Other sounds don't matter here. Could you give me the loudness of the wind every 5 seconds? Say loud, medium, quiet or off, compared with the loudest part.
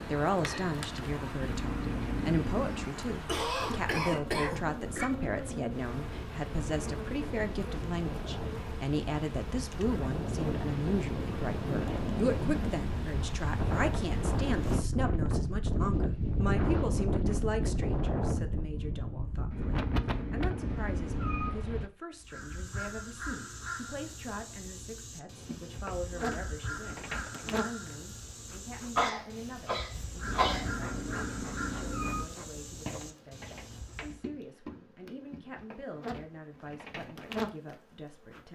medium, medium, loud, loud, medium, off, off, off.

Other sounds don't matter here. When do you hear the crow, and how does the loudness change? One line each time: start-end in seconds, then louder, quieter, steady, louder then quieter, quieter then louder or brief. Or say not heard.
22.2-34.2 steady.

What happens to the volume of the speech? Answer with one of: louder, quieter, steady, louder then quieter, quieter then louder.
quieter.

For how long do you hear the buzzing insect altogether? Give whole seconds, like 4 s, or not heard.
28 s.